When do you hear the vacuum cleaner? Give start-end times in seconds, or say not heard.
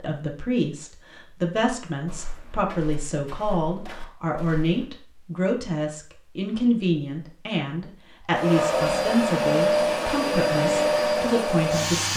8.3-12.1.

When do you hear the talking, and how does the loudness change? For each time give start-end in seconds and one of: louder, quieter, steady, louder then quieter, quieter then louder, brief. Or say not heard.
0.0-12.1 steady.